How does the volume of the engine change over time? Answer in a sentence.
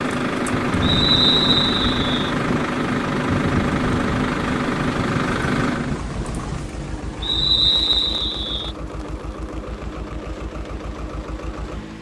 The volume of the engine goes down.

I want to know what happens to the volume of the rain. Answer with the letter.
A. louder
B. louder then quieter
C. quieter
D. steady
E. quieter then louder
C.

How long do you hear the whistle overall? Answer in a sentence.
The whistle can be heard for 3 seconds in total.